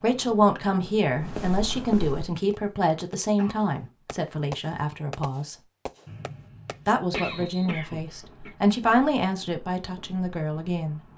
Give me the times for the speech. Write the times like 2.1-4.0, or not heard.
0.0-5.5, 6.8-11.0.